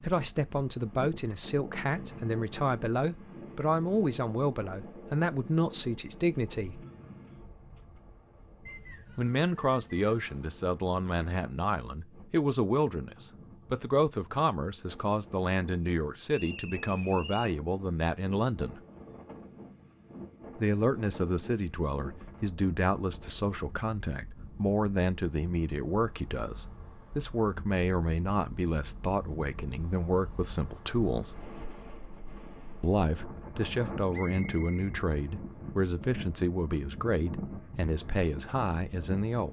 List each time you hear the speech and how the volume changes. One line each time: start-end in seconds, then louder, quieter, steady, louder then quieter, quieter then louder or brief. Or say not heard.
0.0-6.8 steady
9.2-18.8 steady
20.6-31.4 steady
32.8-39.4 steady.